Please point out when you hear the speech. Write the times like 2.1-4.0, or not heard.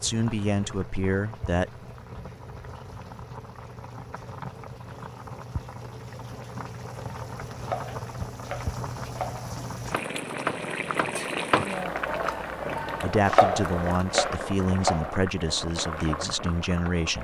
0.0-1.7, 13.0-17.1.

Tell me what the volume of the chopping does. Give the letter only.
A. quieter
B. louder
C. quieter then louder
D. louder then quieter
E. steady
B.